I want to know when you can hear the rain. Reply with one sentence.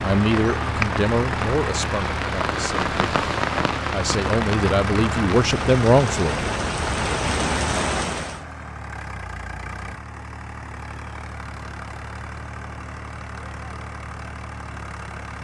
You can hear the rain from 0.0 to 8.4 s.